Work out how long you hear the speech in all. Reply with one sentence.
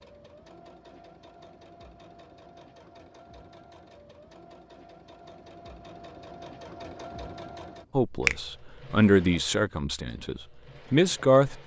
The speech can be heard for 4 seconds in total.